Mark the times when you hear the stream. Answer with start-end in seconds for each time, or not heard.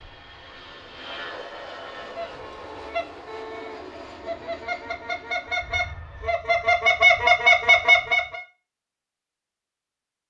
not heard.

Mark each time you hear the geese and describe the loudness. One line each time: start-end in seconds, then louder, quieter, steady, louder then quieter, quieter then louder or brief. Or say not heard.
1.9-8.4 louder.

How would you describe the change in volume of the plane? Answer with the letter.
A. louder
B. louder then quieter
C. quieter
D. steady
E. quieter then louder
C.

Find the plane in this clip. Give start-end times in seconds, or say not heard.
0.0-6.4.